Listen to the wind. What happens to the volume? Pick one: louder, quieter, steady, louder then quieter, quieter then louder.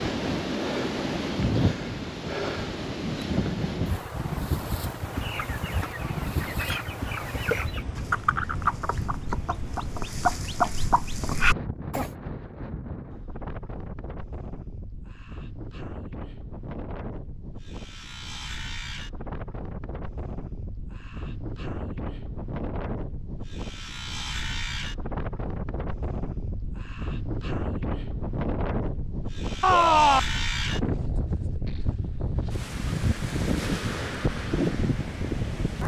quieter then louder.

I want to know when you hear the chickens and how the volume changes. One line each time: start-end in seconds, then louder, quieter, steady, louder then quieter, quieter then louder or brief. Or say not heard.
5.1-12.1 louder.